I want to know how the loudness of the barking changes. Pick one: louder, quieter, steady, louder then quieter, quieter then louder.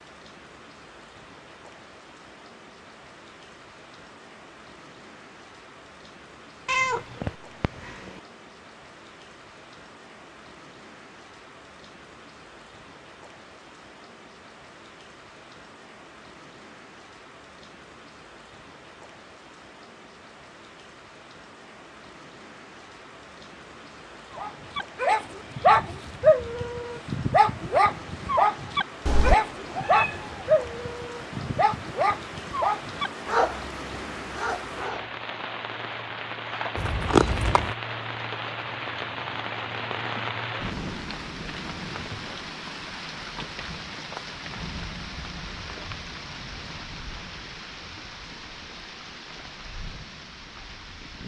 quieter.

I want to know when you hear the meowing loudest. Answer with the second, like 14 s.
37 s.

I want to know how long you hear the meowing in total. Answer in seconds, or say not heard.
4 s.